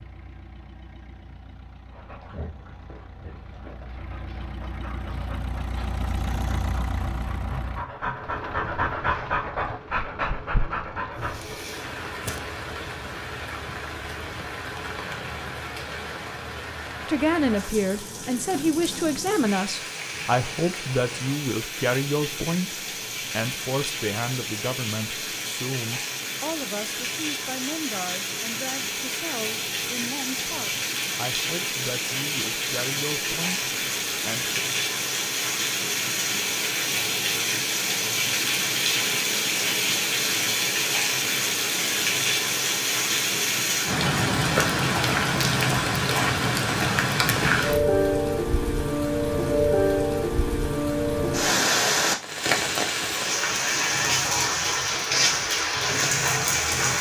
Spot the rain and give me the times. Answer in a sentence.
The rain can be heard from 11.2 to 56.9 s.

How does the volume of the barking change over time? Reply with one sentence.
The volume of the barking goes up.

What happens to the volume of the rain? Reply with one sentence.
The loudness of the rain goes up.